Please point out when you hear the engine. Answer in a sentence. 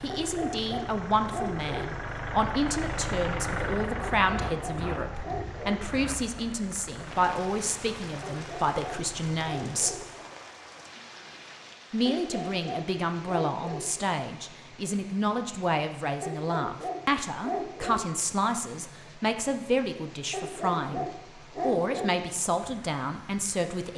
You can hear the engine from 0.0 to 10.3 s.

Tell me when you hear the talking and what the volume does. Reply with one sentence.
You can hear the talking from 0.0 to 9.9 s, at a steady volume; and from 11.9 to 23.9 s, at a steady volume.